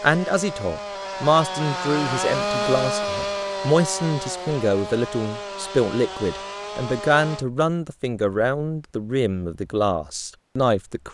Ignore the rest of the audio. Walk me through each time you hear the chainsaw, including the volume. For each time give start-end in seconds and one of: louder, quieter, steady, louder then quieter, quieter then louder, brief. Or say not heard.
0.0-7.5 louder then quieter.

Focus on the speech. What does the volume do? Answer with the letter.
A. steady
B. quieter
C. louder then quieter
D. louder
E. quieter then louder
A.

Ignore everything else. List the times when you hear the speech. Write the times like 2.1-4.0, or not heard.
0.0-11.0.